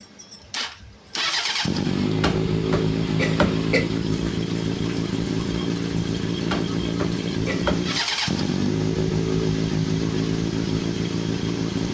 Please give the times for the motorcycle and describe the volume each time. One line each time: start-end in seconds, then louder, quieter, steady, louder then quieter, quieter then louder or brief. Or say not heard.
0.0-11.9 steady.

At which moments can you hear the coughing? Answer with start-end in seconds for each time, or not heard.
2.2-3.9, 6.5-7.8.